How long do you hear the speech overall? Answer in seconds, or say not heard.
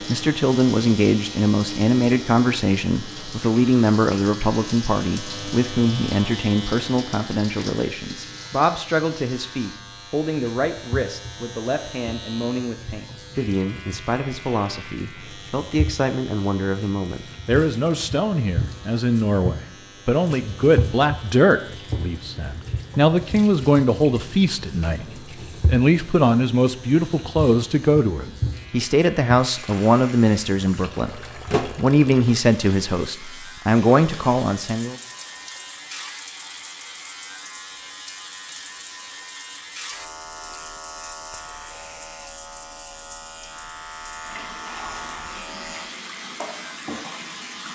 35 s.